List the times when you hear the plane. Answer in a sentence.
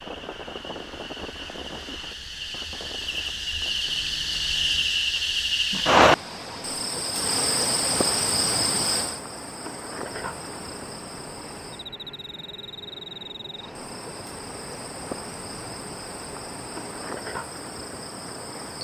The plane can be heard from 0.0 to 4.9 s and from 10.2 to 17.1 s.